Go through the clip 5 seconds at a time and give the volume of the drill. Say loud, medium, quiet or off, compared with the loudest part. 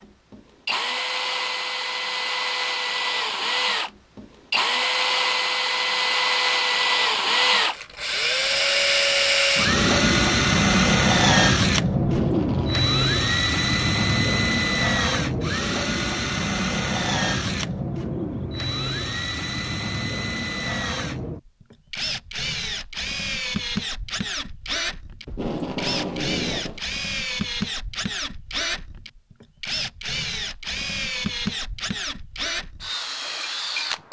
medium, loud, loud, medium, medium, medium, medium.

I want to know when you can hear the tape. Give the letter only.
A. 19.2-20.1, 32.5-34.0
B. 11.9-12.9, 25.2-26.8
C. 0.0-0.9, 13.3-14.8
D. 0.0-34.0
B.